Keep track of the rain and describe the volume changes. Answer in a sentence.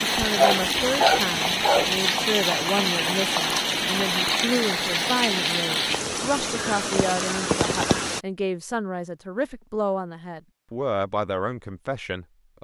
The volume of the rain stays about the same.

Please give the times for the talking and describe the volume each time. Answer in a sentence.
You can hear the talking from 0.0 to 12.5 s, at a steady volume.